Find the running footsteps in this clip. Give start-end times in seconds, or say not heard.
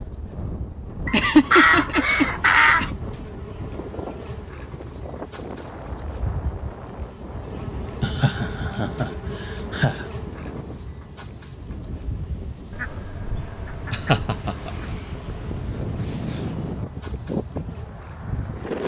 not heard.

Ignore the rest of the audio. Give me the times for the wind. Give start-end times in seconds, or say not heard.
0.0-18.8.